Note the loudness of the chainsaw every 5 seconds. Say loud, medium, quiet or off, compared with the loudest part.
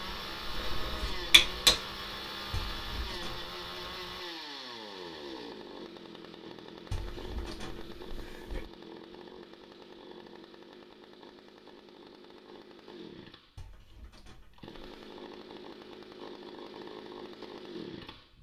loud, medium, medium, medium.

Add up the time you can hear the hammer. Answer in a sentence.
You can hear the hammer for 2 seconds altogether.